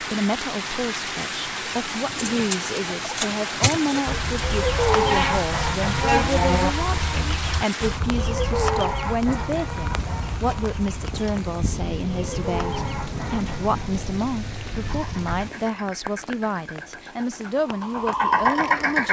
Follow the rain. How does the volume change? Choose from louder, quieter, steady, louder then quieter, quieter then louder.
quieter.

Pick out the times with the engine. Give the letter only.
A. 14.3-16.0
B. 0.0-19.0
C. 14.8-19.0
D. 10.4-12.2
C.